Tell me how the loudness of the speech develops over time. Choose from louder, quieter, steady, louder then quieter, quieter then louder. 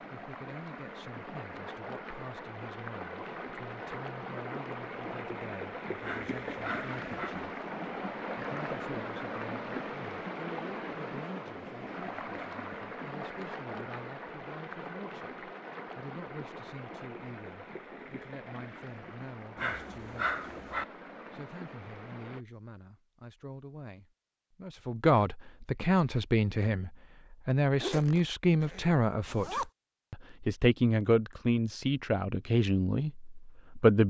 louder.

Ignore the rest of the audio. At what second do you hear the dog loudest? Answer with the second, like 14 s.
20 s.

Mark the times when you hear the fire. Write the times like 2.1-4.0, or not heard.
not heard.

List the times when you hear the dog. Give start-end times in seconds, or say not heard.
6.0-7.3, 19.6-20.9.